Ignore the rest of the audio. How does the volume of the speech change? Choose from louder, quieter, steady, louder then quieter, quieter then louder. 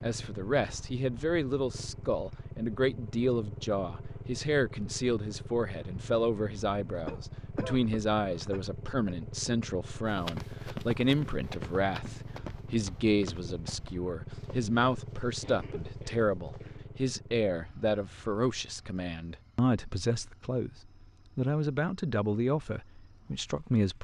steady.